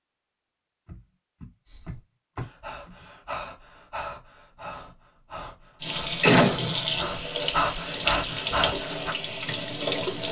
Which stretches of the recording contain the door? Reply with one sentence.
The door can be heard from 0.8 to 3.1 s.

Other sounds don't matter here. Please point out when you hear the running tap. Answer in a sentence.
You can hear the running tap from 5.8 to 10.2 s.